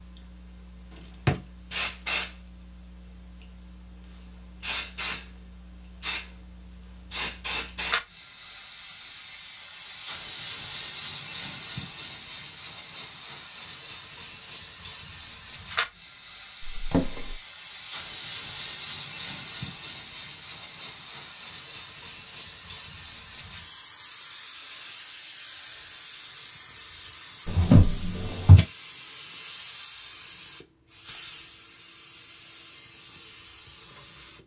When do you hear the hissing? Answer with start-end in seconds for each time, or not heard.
0.0-34.4.